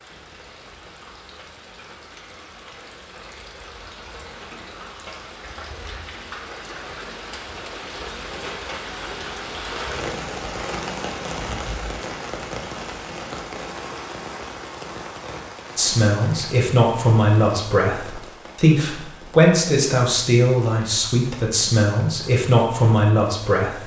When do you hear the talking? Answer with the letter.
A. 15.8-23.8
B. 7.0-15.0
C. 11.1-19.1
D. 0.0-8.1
A.